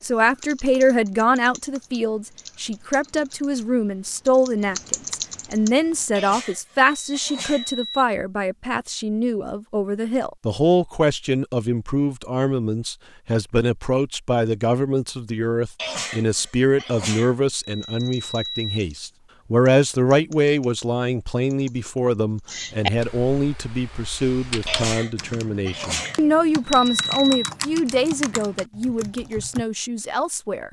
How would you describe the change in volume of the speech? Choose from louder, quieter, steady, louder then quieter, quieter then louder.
steady.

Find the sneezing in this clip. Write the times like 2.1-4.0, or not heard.
6.2-8.2, 15.8-17.4, 24.6-26.2.